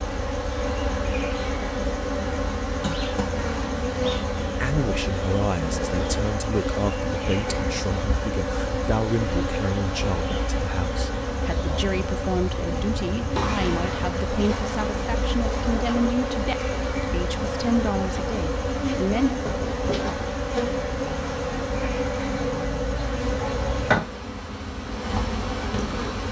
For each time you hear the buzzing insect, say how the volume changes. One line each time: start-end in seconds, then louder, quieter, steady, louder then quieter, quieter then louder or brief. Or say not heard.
0.0-26.2 steady.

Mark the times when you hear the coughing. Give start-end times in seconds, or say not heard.
2.8-3.4.